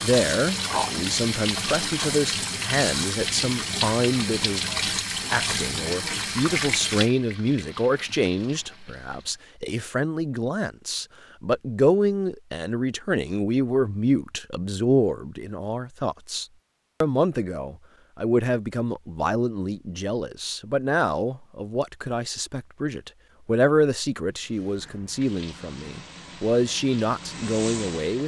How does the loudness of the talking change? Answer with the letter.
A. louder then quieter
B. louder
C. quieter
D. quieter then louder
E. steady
E.